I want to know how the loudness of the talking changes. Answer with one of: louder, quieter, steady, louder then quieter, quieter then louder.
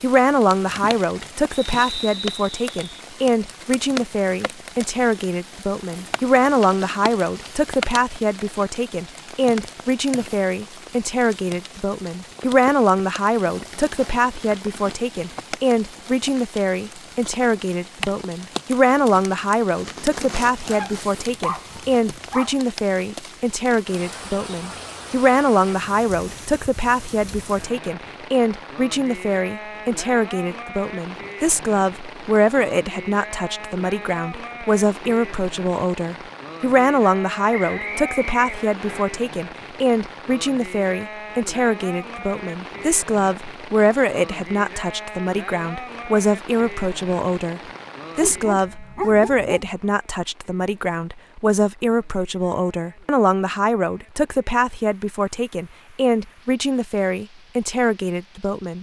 steady.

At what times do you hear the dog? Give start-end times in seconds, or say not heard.
20.6-22.6, 48.2-49.7.